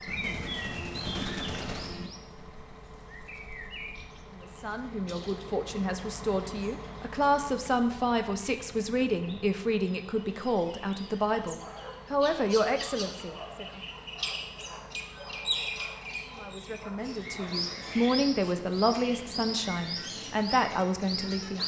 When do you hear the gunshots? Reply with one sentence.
You can hear the gunshots from 0.1 to 2.1 s.